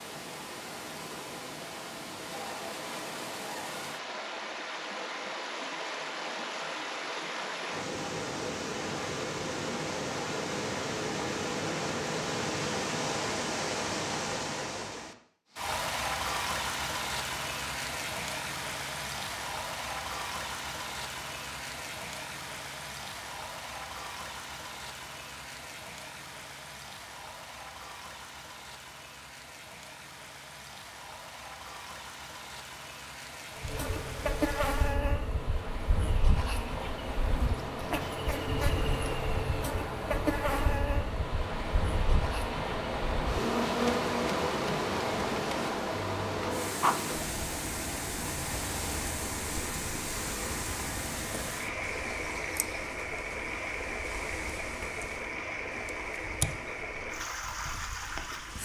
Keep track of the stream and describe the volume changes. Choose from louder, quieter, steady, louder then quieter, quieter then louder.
quieter then louder.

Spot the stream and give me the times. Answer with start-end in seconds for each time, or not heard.
0.0-58.6.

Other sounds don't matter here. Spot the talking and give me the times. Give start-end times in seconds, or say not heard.
not heard.